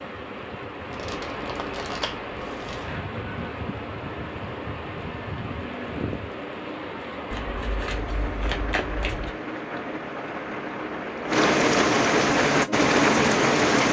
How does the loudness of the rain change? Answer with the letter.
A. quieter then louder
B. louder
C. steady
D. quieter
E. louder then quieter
B.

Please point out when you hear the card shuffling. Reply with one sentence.
The card shuffling can be heard from 0.9 to 3.0 s and from 7.3 to 9.3 s.